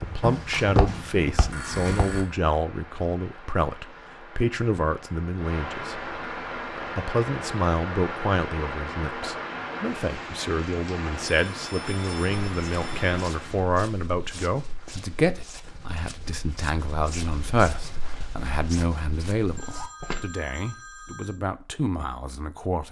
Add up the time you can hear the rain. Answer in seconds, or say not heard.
14 s.